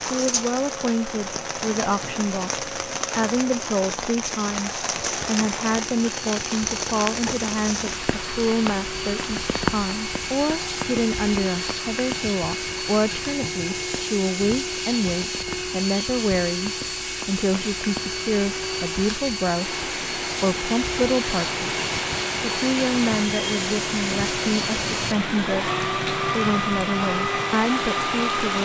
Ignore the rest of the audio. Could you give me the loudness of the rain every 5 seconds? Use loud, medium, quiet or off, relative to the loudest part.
loud, loud, medium, medium, loud, loud.